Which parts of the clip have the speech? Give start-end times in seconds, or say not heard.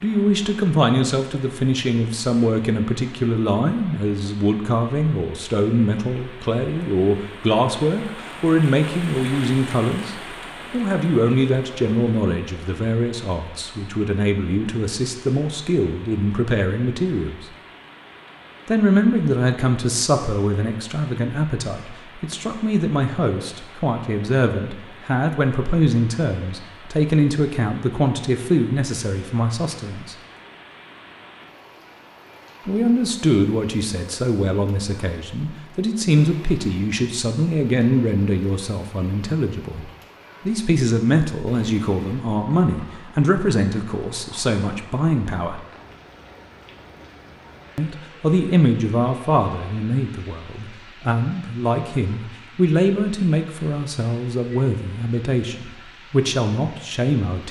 0.0-17.4, 18.6-30.1, 32.6-45.6, 47.8-57.4.